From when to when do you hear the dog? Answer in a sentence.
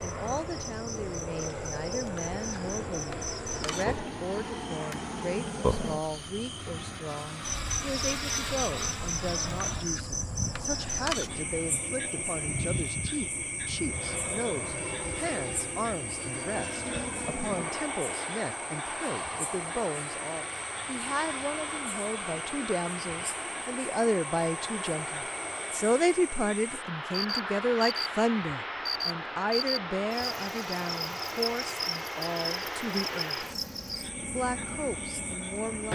The dog can't be heard in this clip.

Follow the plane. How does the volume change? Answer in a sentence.
The loudness of the plane stays about the same.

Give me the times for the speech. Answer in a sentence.
You can hear the speech from 0.0 to 33.5 s and from 34.3 to 35.9 s.